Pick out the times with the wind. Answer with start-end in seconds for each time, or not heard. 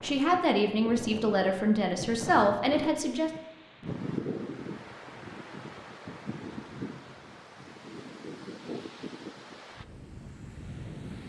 0.0-11.2.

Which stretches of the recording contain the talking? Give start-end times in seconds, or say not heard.
0.0-3.3.